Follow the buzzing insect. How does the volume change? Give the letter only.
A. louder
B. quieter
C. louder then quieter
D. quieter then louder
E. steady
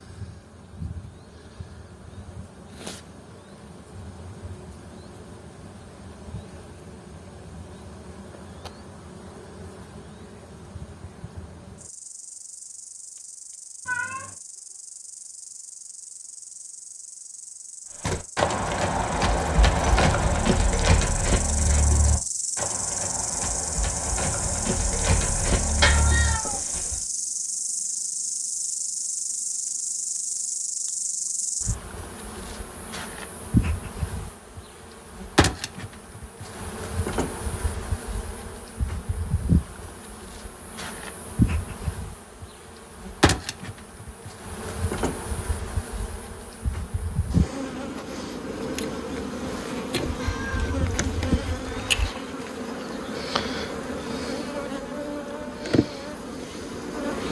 A.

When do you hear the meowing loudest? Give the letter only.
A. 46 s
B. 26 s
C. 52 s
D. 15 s
B.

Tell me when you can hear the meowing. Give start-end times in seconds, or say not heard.
13.8-14.3, 25.8-27.0, 50.0-52.0.